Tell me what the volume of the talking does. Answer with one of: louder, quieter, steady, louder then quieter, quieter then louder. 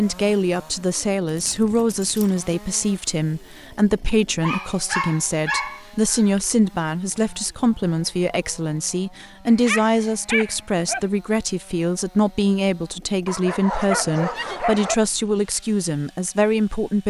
steady.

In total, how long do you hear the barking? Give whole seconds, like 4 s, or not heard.
6 s.